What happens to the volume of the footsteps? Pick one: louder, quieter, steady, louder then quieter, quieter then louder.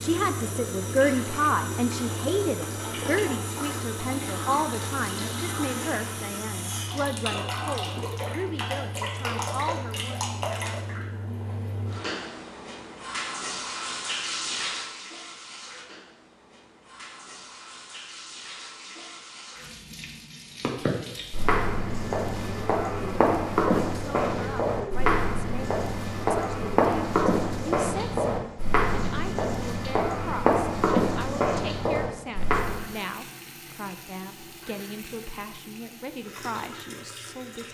steady.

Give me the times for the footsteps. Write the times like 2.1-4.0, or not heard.
20.6-32.9.